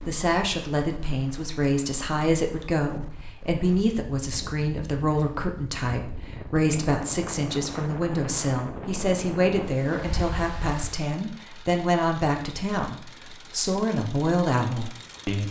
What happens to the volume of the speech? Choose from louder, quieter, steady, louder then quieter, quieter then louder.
steady.